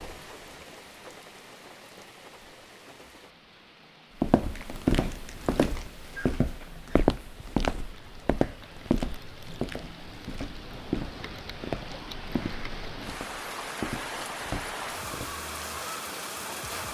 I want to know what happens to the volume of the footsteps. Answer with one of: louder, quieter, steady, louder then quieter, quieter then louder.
quieter.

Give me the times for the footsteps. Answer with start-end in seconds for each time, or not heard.
4.2-15.3.